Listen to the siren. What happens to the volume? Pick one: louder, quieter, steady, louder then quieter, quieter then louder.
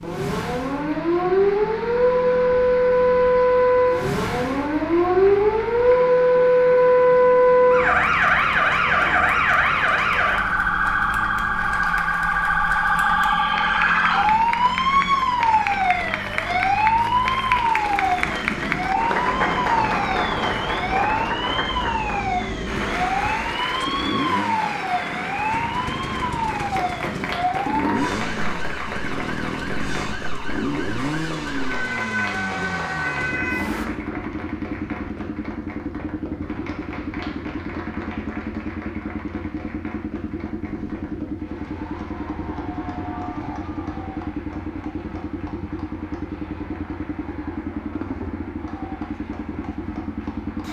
quieter.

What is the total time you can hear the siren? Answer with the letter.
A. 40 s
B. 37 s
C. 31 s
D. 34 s
D.